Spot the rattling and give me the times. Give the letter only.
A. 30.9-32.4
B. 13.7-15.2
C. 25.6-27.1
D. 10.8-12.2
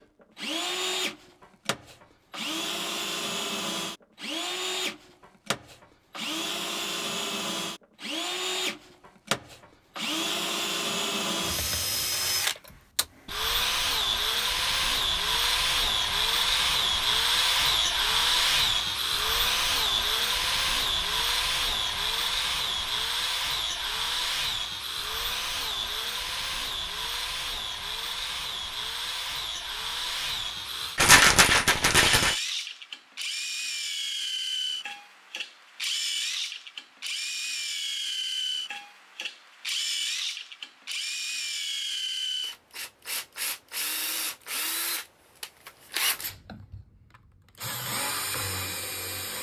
A.